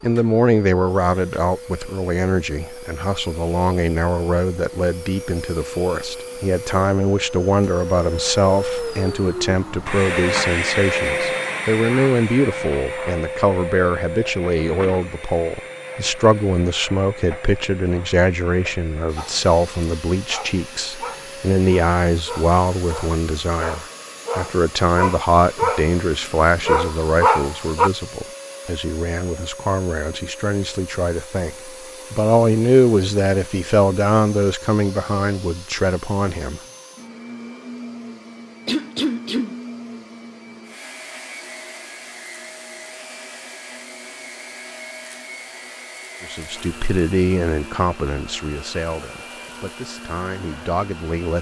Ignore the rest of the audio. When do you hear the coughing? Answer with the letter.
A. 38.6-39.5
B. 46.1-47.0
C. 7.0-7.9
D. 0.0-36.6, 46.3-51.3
A.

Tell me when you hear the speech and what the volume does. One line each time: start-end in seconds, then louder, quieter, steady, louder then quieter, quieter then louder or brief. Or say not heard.
0.0-36.6 steady
46.3-51.3 quieter then louder.